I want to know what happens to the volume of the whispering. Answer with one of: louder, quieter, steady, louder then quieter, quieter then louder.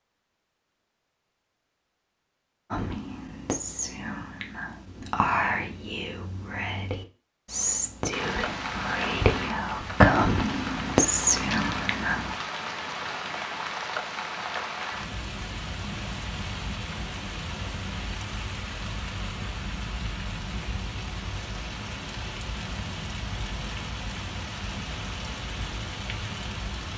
louder.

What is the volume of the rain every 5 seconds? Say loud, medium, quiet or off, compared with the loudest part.
off, loud, loud, loud, loud, loud.